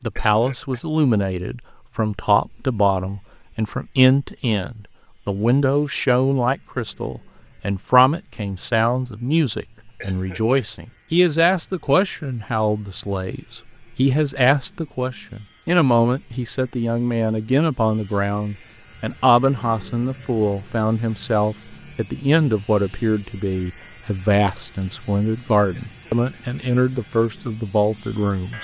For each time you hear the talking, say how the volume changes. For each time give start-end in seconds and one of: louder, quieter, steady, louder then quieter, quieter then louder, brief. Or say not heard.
0.0-28.5 steady.